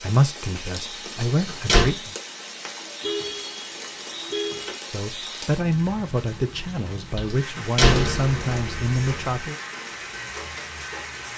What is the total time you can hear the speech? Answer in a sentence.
You can hear the speech for 7 seconds altogether.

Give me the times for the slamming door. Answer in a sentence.
The slamming door can be heard from 1.4 to 1.9 s and from 7.4 to 9.4 s.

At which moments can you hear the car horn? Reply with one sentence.
You can hear the car horn from 3.0 to 4.8 s.